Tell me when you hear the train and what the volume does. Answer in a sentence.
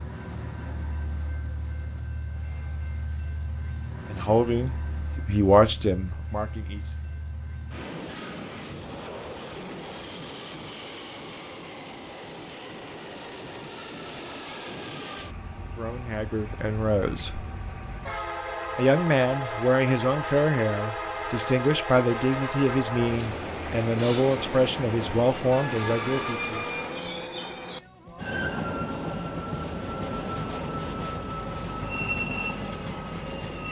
The train can be heard from 0.0 to 33.6 s, getting louder.